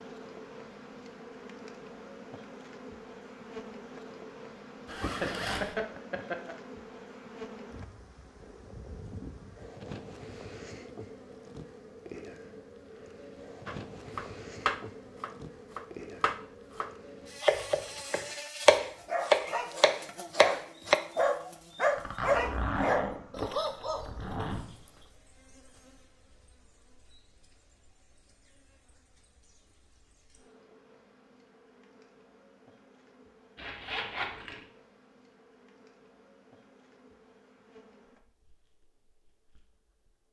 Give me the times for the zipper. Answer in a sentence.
The zipper can be heard from 4.8 to 5.8 s, from 21.9 to 24.6 s and from 33.5 to 34.6 s.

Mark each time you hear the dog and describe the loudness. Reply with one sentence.
You can hear the dog from 18.9 to 24.9 s, getting louder then quieter.